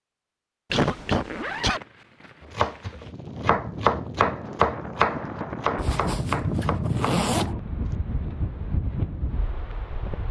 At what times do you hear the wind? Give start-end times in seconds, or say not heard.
2.9-10.2.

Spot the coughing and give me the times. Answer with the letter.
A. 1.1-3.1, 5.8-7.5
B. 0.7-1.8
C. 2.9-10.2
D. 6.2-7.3
B.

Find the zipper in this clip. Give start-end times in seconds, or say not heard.
1.1-3.1, 5.8-7.5.